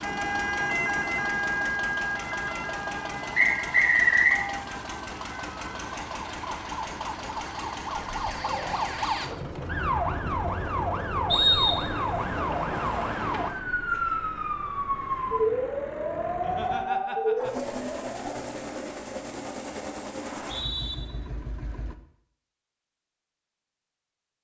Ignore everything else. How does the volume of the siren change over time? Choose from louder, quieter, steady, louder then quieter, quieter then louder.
quieter then louder.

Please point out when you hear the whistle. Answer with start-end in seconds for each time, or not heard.
3.4-4.3, 11.3-12.1, 20.2-20.9.